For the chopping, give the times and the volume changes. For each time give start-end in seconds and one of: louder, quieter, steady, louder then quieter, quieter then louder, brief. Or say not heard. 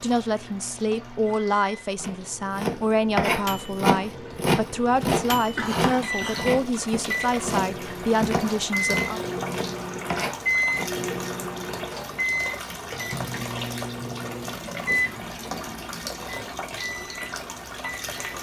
2.0-10.9 quieter.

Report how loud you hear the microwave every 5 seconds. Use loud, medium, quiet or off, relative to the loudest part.
quiet, loud, loud, medium.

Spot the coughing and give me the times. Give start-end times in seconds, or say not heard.
5.5-6.5.